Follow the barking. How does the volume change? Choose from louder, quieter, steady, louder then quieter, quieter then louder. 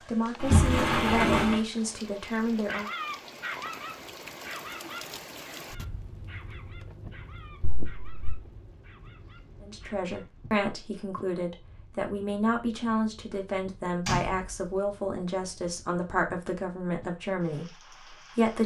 quieter.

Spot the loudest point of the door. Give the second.
1 s.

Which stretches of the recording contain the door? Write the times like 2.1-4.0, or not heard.
0.4-1.6, 7.6-8.3, 14.1-14.8.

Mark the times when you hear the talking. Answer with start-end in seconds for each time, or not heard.
0.1-2.9, 9.6-18.6.